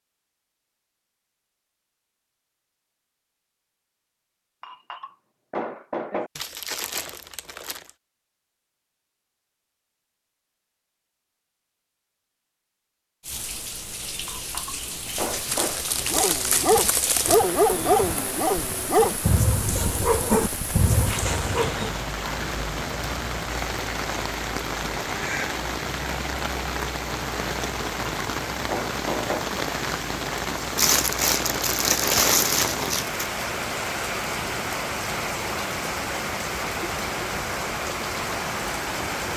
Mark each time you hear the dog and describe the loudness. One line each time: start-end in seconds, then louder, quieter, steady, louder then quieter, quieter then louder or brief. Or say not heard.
16.1-21.9 quieter.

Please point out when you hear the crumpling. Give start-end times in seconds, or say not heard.
6.3-7.9, 15.4-17.4, 30.8-33.2.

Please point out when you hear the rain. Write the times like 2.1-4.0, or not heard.
13.2-39.3.